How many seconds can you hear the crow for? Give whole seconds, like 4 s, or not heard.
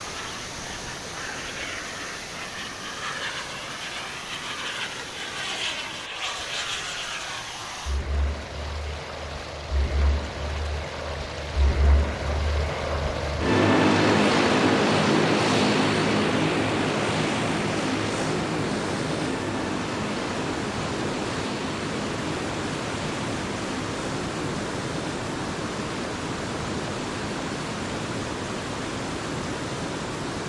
not heard.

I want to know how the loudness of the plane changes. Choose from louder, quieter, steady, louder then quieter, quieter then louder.
louder then quieter.